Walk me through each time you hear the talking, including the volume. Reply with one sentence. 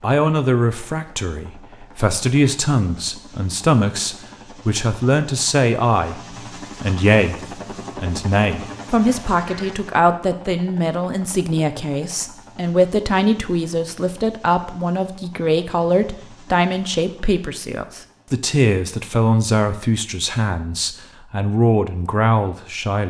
The talking can be heard from 0.0 to 23.0 s, at a steady volume.